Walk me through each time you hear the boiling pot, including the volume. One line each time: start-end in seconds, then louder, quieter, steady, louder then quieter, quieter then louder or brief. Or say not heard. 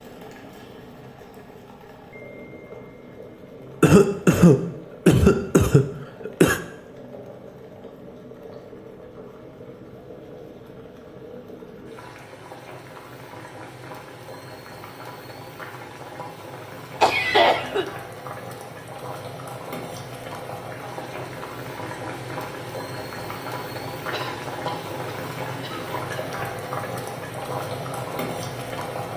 0.0-29.1 louder.